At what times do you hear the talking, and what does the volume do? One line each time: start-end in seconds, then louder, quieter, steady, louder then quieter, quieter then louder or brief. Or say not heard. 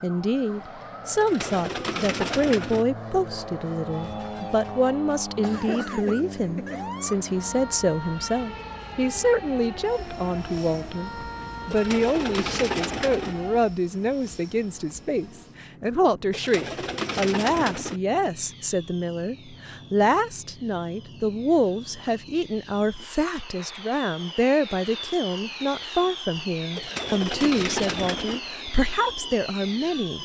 0.0-30.1 steady.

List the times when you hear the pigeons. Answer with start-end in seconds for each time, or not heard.
1.1-2.9, 11.7-13.3, 16.3-18.0, 26.8-28.4.